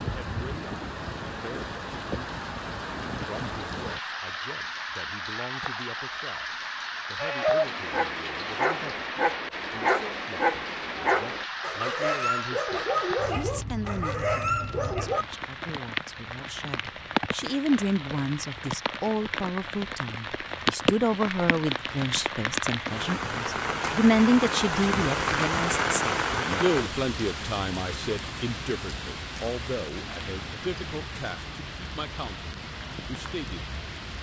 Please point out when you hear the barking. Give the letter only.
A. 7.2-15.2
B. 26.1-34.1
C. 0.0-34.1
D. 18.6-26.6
A.